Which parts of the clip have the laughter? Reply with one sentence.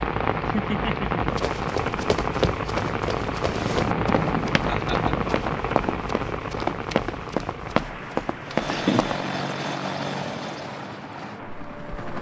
You can hear the laughter from 0.5 to 1.2 s, from 4.6 to 5.2 s and from 8.6 to 9.1 s.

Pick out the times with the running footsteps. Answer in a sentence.
You can hear the running footsteps from 1.3 to 9.2 s.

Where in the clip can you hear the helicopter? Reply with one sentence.
The helicopter can be heard from 3.5 to 5.8 s and from 8.4 to 12.1 s.